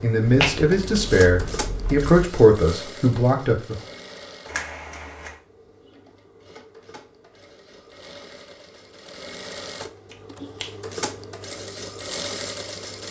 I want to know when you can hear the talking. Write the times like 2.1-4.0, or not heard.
0.0-3.8.